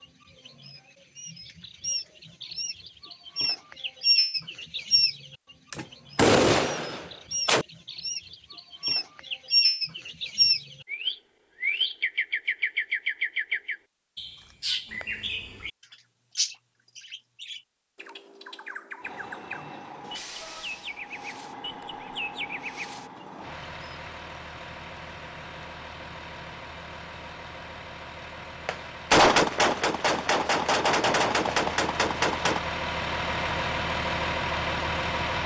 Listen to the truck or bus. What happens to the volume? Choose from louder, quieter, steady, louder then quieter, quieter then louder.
louder.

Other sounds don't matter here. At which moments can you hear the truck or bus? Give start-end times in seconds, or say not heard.
19.0-35.4.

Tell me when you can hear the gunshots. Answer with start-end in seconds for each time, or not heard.
5.7-7.7, 28.6-32.6.